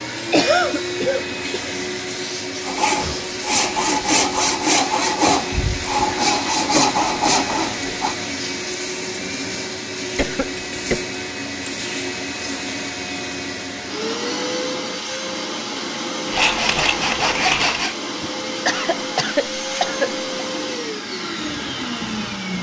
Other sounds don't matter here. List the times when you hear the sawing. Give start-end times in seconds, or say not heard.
2.6-8.2, 16.2-17.9.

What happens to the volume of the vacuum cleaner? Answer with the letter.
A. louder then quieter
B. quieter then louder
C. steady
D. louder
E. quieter
C.